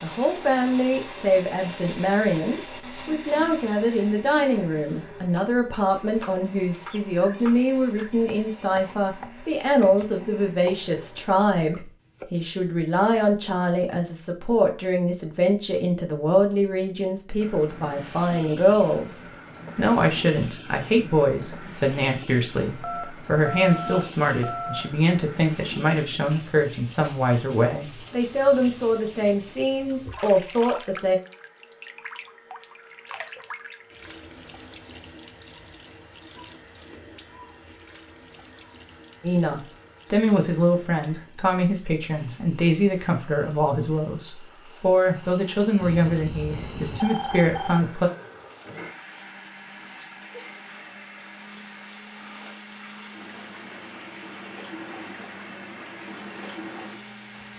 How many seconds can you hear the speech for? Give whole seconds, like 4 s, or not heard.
40 s.